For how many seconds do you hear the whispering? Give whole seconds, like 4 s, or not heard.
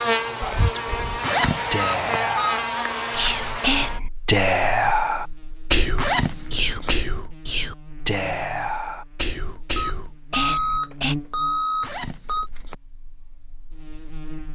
11 s.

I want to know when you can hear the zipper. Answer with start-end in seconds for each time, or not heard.
1.2-2.2, 6.0-7.0, 11.8-12.8.